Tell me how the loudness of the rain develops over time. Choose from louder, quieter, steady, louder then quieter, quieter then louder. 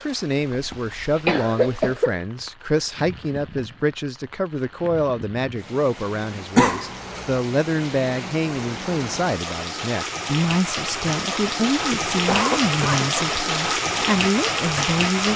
louder.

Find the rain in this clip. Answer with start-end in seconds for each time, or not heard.
0.0-15.3.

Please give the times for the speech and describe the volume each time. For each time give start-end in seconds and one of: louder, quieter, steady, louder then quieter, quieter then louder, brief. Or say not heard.
0.0-15.3 steady.